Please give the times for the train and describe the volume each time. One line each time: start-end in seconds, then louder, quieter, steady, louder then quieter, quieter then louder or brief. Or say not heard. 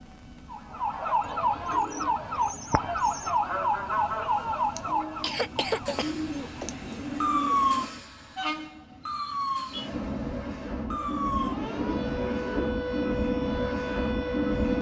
0.0-14.7 louder.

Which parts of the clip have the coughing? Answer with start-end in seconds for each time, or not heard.
4.8-6.7.